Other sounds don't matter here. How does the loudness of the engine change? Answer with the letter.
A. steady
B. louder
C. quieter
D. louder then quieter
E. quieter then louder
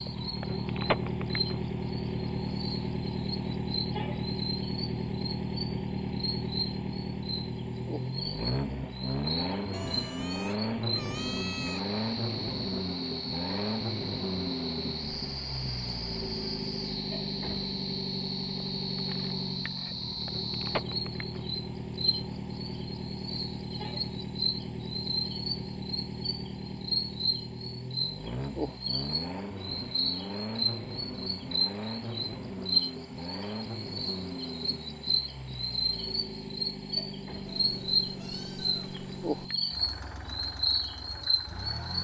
C.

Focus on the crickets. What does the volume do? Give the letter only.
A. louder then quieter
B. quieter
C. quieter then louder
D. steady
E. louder
E.